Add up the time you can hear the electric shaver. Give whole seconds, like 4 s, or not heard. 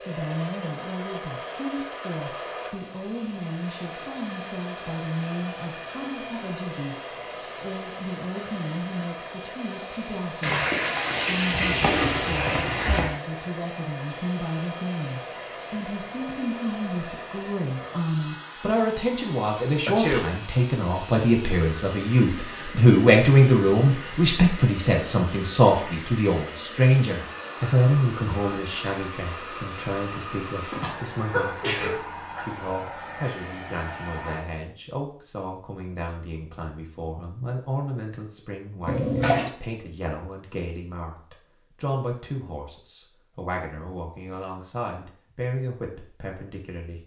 not heard.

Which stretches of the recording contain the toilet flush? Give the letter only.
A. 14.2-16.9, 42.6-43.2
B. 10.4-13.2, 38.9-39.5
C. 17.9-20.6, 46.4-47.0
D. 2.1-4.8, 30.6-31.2
B.